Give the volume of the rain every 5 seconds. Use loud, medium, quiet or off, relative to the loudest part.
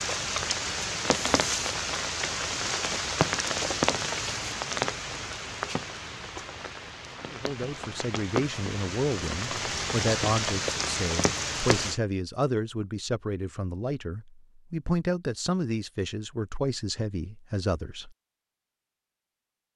loud, medium, loud, off.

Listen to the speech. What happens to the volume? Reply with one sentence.
The loudness of the speech stays about the same.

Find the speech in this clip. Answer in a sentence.
You can hear the speech from 7.3 to 18.1 s.